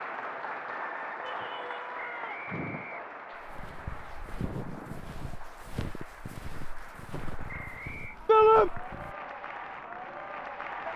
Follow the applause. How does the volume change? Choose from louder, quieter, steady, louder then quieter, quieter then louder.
quieter then louder.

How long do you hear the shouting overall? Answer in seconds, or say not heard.
2 s.